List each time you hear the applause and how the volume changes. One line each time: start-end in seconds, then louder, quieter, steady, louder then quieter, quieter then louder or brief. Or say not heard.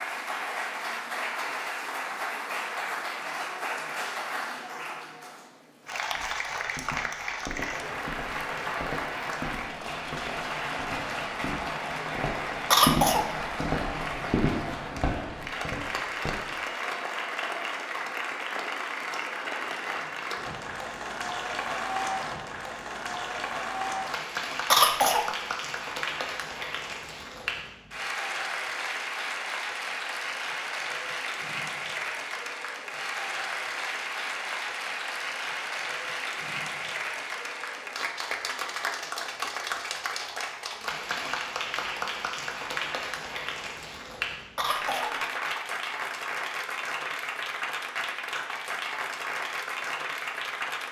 0.0-50.8 steady.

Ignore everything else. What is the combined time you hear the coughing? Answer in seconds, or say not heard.
2 s.